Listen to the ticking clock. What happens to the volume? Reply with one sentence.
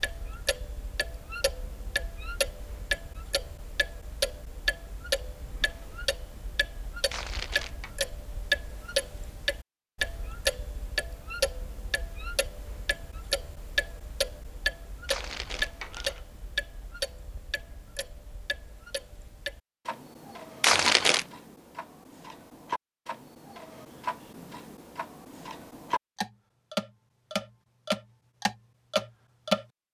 The volume of the ticking clock goes down, then up.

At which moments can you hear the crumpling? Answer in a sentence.
The crumpling can be heard from 7.1 to 7.9 s, from 15.1 to 16.2 s and from 20.6 to 21.2 s.